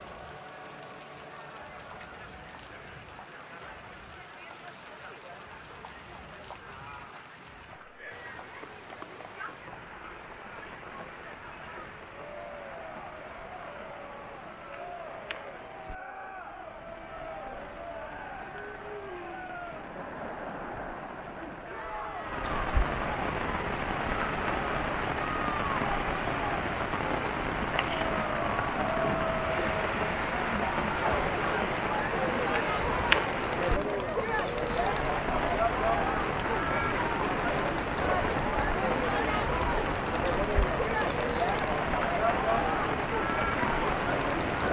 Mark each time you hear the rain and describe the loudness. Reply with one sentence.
You can hear the rain from 0.0 to 44.6 s, getting louder.